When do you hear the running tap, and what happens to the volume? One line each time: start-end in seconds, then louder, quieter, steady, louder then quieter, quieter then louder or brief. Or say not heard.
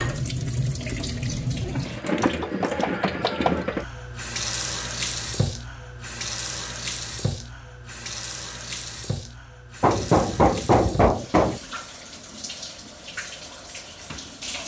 0.0-14.6 quieter.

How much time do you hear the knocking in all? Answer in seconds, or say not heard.
3 s.